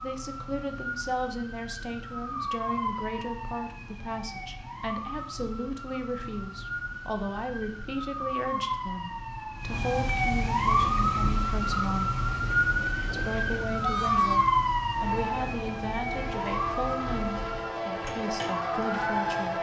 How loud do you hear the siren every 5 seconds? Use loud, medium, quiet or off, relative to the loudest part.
medium, medium, loud, medium.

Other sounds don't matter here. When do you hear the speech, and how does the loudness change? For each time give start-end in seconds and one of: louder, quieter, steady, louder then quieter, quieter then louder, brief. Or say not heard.
0.0-12.1 steady
13.1-19.5 steady.